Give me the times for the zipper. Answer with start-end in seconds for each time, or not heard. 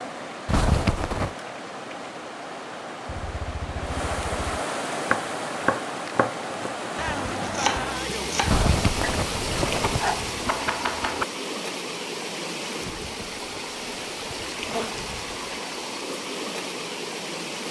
0.5-1.4, 8.4-10.1, 12.8-14.9.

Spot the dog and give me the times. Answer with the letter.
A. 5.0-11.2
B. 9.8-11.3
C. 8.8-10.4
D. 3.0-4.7
D.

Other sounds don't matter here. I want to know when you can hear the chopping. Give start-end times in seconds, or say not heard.
5.0-11.2.